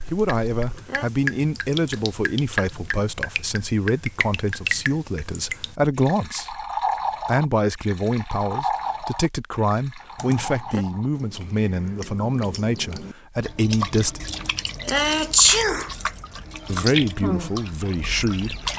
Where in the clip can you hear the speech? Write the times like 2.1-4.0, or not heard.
0.1-6.5, 7.2-14.2, 16.6-18.7.